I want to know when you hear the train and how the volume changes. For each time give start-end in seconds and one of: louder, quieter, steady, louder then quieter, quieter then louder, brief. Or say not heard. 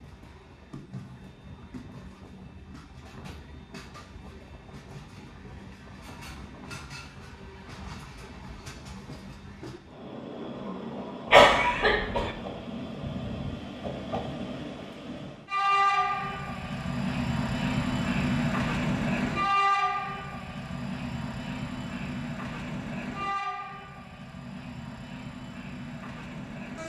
0.0-26.8 louder then quieter.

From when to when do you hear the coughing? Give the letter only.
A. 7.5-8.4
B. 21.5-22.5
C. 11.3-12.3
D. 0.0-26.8
C.